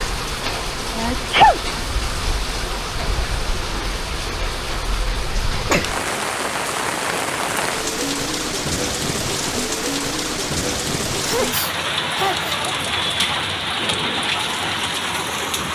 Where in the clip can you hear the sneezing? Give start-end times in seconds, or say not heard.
0.9-1.6, 5.5-5.9, 11.2-12.6.